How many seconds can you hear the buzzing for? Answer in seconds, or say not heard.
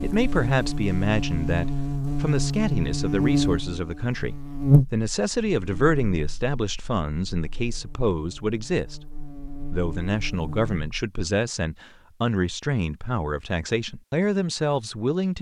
11 s.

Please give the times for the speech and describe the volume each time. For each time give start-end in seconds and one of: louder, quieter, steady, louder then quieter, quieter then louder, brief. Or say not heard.
0.0-15.3 steady.